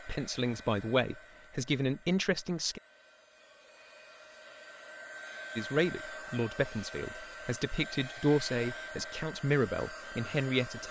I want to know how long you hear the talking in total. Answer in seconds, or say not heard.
8 s.